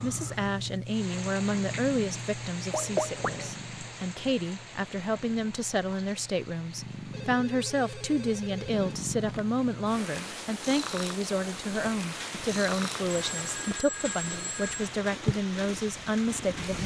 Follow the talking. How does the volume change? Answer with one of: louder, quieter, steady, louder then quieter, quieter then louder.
steady.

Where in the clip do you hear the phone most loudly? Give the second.
3 s.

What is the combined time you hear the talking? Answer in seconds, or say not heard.
17 s.